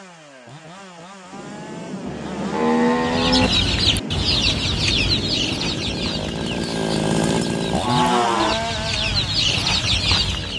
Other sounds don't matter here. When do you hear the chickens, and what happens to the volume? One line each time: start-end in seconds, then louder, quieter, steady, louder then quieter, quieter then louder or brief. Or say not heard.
3.0-10.5 quieter then louder.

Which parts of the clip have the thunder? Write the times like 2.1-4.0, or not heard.
1.3-6.0.